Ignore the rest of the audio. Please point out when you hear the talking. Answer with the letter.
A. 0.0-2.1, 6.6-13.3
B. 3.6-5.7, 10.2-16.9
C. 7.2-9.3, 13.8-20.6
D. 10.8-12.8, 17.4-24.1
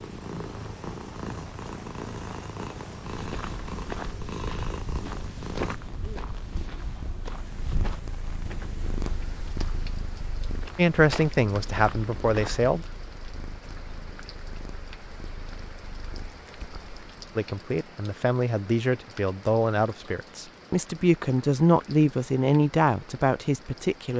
D.